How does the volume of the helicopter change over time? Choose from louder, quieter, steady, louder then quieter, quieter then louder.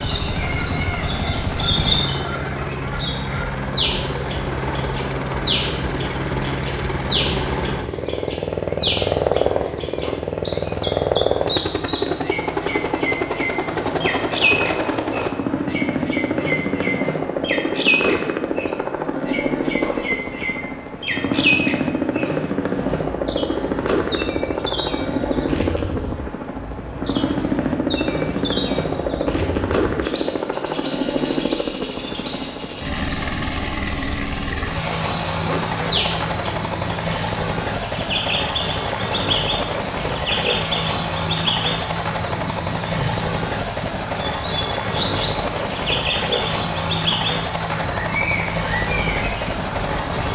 steady.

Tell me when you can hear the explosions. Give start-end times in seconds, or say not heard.
19.8-20.2.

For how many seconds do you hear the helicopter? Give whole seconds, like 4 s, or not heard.
50 s.